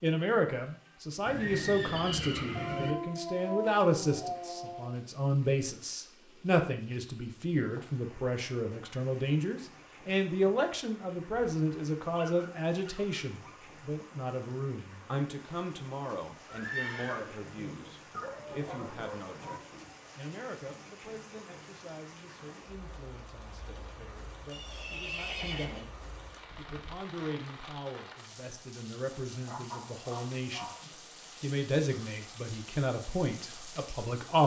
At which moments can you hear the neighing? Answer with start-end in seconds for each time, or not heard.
1.2-3.0, 16.4-17.9, 24.5-25.9.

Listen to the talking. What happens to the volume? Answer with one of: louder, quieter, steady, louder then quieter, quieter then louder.
quieter then louder.